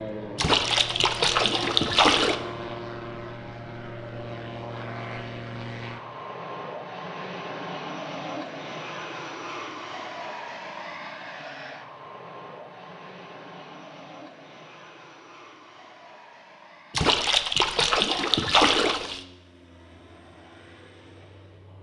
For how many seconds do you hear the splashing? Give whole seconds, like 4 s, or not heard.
4 s.